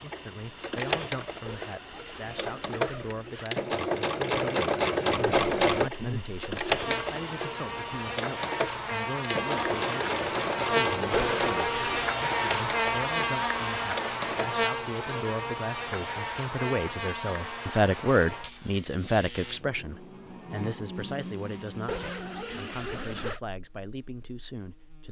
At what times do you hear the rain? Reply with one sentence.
The rain can't be heard in this clip.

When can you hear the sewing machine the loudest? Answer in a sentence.
The loudest moment of the sewing machine is at 5 seconds.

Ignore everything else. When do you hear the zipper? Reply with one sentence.
You can hear the zipper from 1.4 to 3.5 s, from 11.1 to 12.2 s and from 21.9 to 23.4 s.